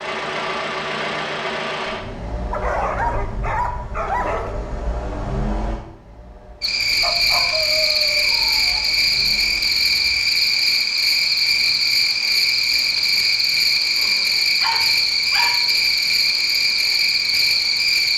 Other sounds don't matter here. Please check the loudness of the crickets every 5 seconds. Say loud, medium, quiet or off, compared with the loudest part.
off, loud, loud, loud.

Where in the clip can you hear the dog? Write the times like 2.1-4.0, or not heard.
2.5-4.5, 7.0-8.8, 13.9-15.7.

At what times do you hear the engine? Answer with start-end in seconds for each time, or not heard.
0.0-10.2.